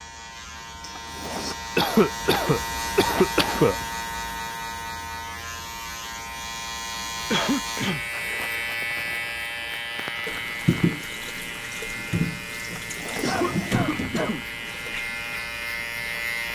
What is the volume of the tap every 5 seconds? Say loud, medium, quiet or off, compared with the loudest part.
off, off, loud, quiet.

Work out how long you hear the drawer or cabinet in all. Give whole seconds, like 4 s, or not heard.
2 s.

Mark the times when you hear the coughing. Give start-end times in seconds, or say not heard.
1.8-3.9, 7.3-8.1, 13.2-14.4.